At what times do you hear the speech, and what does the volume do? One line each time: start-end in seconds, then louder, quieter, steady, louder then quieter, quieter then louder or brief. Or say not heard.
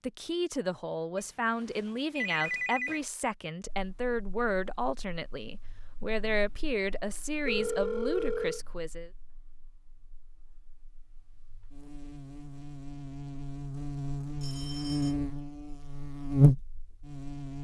0.0-9.1 steady.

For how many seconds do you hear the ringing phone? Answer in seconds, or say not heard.
4 s.